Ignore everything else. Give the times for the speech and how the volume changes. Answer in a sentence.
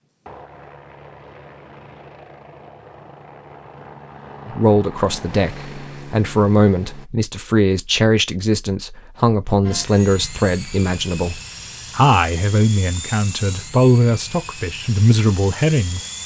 You can hear the speech from 4.5 to 16.1 s, at a steady volume.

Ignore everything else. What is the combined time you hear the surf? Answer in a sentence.
The surf can't be heard in this clip.